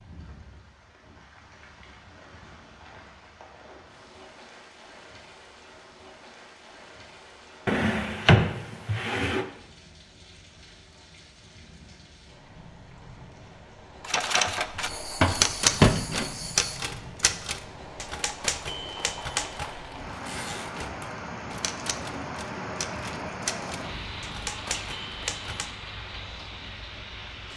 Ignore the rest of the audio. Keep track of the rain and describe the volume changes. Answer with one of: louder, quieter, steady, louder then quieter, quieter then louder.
louder.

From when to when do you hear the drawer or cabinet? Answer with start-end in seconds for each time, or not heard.
7.7-9.4, 14.4-16.2.